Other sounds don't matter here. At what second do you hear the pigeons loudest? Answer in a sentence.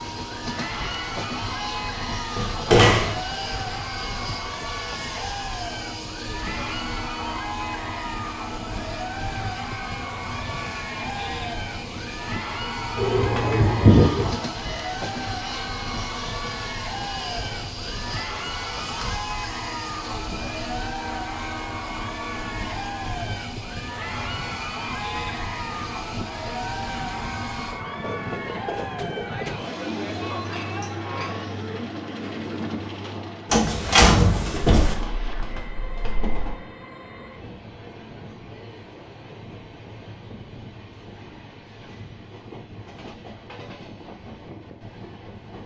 The volume of the pigeons peaks at 14 seconds.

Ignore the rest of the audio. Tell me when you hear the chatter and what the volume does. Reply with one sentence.
You can hear the chatter from 0.1 to 31.6 s, at a steady volume.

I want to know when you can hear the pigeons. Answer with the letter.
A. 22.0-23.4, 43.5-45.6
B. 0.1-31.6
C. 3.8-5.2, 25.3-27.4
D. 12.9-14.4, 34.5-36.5
D.